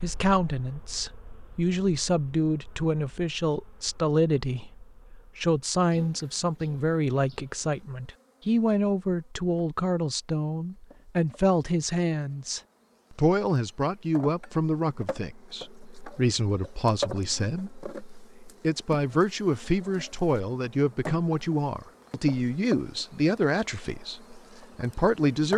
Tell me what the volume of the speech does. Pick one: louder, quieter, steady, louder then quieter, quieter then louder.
steady.